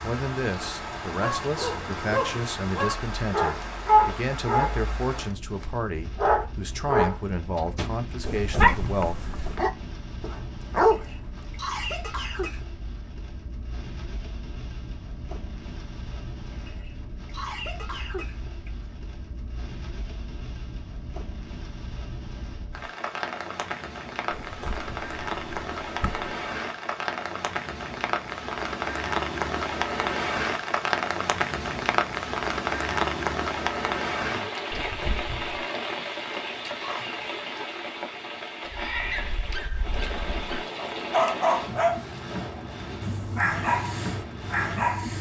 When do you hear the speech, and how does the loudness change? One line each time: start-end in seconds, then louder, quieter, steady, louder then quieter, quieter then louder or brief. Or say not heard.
0.0-9.2 steady.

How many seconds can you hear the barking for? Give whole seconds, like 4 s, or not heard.
16 s.